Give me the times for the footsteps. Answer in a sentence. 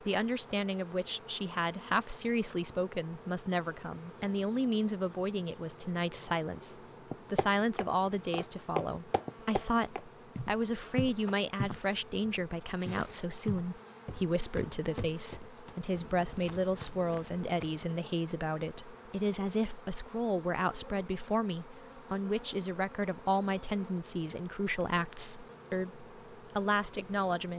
The footsteps can be heard from 7.1 to 17.9 s.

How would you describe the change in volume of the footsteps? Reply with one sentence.
The loudness of the footsteps goes down.